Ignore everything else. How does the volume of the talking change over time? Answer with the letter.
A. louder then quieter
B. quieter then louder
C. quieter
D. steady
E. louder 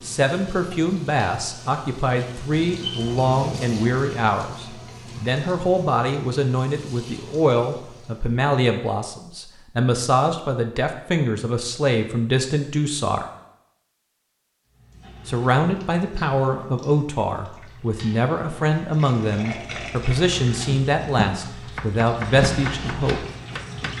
D.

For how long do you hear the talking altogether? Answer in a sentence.
The talking can be heard for 21 seconds in total.